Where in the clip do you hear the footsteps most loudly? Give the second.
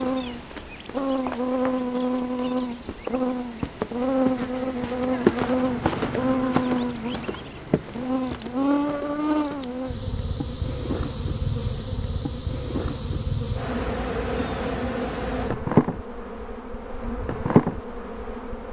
5 s.